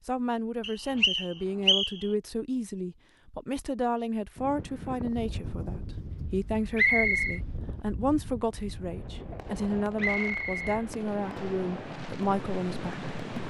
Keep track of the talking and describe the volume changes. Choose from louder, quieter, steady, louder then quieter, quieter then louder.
steady.